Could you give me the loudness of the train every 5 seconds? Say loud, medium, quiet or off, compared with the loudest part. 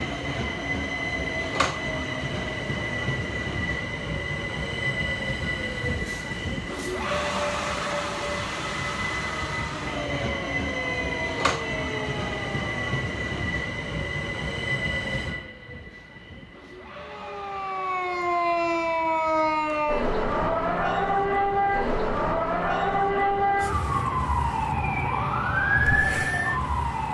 loud, loud, loud, medium, quiet, quiet.